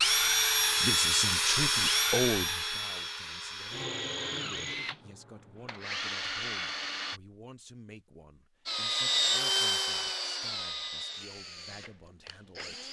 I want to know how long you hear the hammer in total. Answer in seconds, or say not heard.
not heard.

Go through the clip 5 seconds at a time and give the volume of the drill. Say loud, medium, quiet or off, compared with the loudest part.
loud, loud, medium.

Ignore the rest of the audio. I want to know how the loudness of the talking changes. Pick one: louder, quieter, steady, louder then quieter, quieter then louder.
quieter.